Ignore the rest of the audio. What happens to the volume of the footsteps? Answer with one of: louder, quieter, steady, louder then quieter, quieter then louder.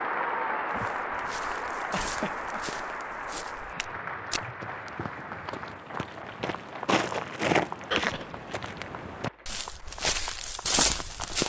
louder.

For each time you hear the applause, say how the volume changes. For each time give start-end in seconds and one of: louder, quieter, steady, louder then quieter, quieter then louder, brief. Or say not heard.
0.0-11.3 quieter.